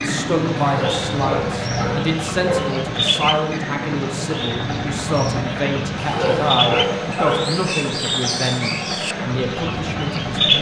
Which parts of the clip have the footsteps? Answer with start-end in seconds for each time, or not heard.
not heard.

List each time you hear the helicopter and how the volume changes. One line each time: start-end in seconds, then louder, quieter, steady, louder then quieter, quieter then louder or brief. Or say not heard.
0.0-10.5 steady.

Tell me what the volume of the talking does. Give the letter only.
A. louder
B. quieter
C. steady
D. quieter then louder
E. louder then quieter
C.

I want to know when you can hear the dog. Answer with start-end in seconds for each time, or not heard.
0.6-2.7, 6.0-7.7.